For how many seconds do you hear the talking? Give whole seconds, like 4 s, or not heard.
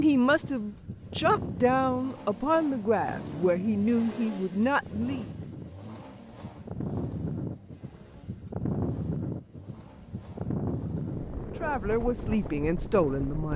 7 s.